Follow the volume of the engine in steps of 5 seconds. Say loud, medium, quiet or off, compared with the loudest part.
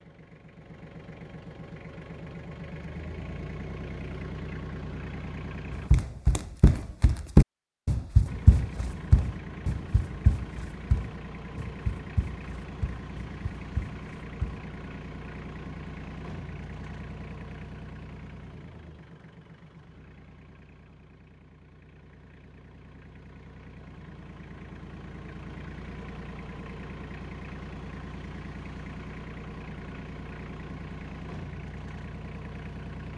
loud, loud, loud, loud, medium, loud, loud.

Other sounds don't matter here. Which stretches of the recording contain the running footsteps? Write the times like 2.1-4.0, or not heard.
5.7-14.7.